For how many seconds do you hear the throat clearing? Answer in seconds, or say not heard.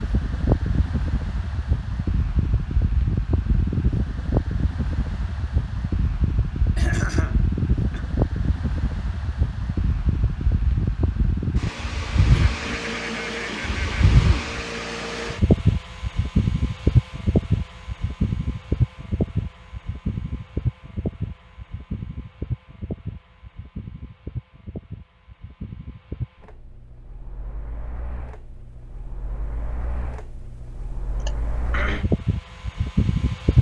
4 s.